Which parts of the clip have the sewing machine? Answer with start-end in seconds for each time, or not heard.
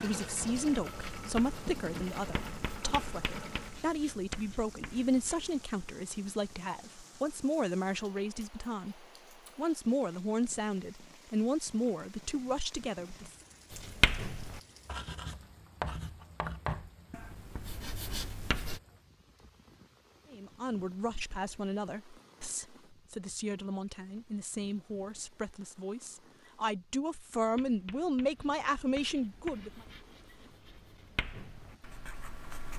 0.0-3.9.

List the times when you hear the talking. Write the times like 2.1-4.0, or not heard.
0.0-13.3, 20.3-29.8.